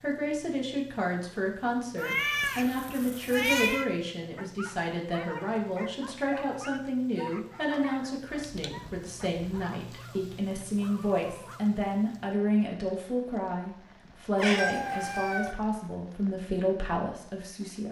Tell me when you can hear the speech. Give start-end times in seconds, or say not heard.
0.0-17.8.